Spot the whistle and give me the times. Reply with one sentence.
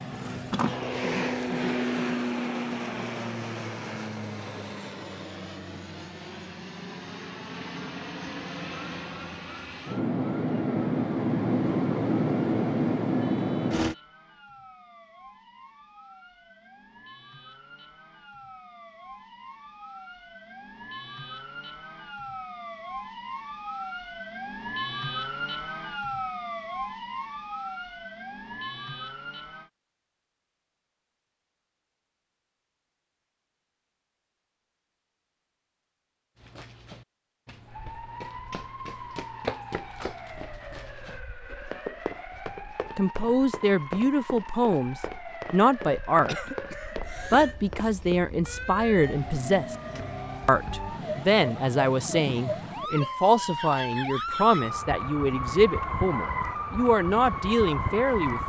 The whistle can't be heard in this clip.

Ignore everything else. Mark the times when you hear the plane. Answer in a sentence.
The plane can be heard from 0.0 to 13.9 s.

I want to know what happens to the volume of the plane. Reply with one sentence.
The volume of the plane goes down, then up.